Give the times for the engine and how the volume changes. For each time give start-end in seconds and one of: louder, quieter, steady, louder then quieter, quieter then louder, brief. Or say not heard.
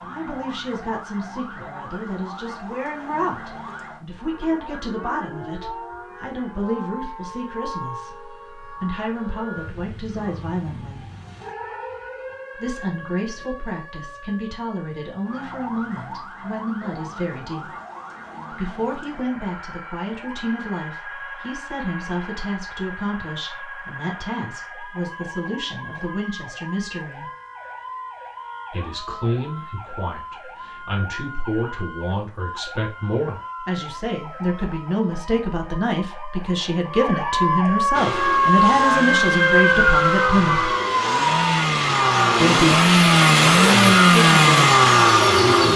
37.9-45.7 louder.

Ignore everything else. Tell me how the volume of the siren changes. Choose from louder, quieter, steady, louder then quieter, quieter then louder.
louder.